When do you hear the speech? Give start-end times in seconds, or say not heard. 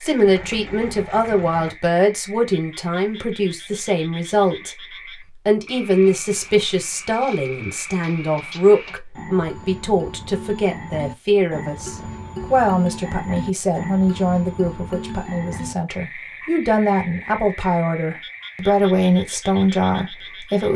0.0-4.7, 5.5-20.7.